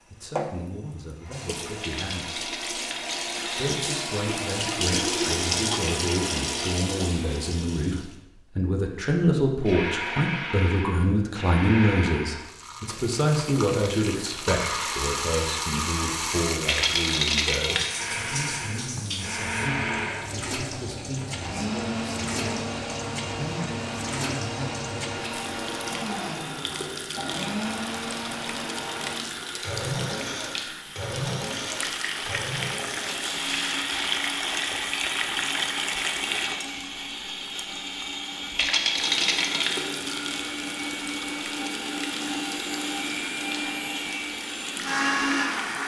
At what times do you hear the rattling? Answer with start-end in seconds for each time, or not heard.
1.8-3.6, 16.6-18.0, 38.5-39.9.